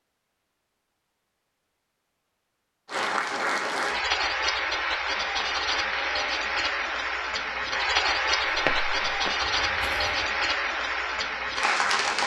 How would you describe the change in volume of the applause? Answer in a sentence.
The volume of the applause stays about the same.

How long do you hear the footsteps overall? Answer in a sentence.
You can hear the footsteps for 2 seconds altogether.